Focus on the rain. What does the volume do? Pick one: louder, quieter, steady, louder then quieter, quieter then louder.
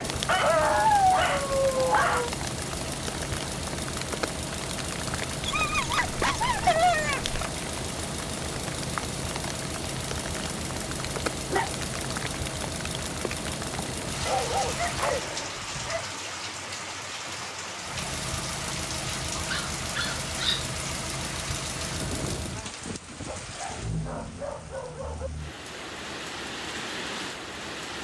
steady.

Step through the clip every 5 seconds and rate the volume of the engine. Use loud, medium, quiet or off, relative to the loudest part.
loud, loud, loud, loud, loud, off.